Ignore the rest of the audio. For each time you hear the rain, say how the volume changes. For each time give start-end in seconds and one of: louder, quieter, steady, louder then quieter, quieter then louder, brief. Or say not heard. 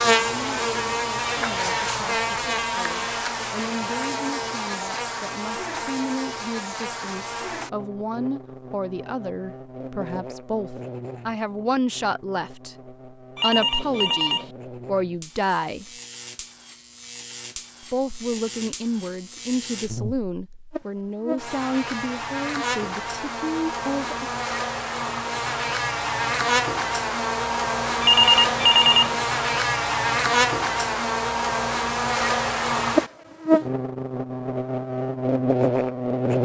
not heard.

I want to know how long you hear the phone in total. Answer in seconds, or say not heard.
2 s.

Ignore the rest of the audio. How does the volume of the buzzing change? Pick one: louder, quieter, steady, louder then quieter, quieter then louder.
quieter then louder.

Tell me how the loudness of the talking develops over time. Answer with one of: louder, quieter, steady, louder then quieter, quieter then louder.
louder.